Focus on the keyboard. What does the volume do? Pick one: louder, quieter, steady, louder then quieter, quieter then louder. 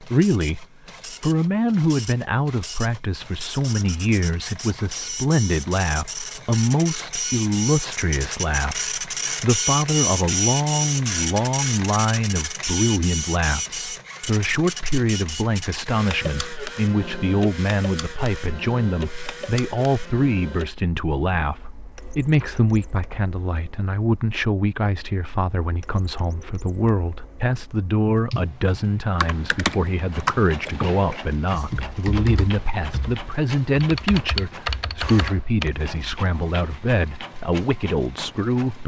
quieter then louder.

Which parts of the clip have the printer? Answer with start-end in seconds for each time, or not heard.
0.0-38.8.